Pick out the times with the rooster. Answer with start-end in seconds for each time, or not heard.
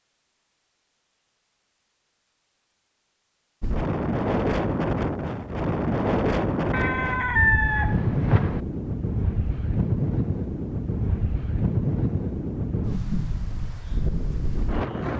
6.7-8.7.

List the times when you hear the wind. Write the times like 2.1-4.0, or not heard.
3.6-15.1.